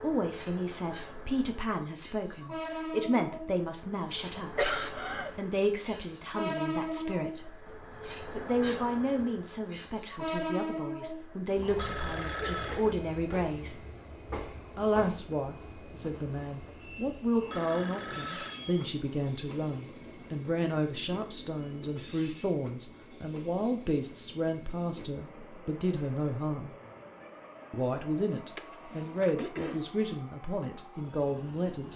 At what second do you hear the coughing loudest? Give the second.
5 s.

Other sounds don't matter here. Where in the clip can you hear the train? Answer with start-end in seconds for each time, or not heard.
0.0-31.9.